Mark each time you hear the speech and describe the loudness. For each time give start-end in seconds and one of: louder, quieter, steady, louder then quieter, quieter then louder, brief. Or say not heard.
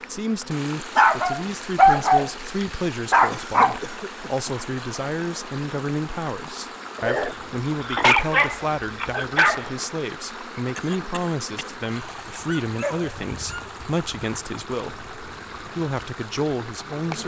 0.1-17.2 steady.